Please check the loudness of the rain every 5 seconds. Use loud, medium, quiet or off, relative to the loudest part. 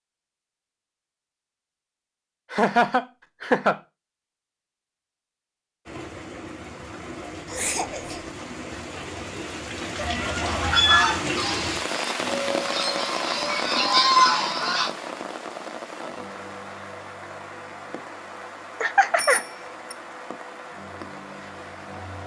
off, medium, loud, medium, medium.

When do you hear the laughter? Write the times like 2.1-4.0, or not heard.
2.5-3.8, 7.5-8.3, 18.8-19.4.